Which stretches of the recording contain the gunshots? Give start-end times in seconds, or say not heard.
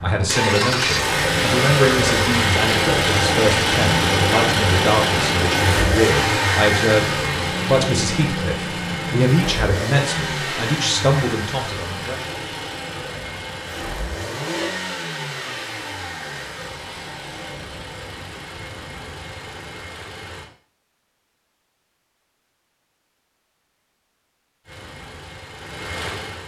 not heard.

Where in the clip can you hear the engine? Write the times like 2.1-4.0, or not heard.
0.0-20.5, 24.6-26.4.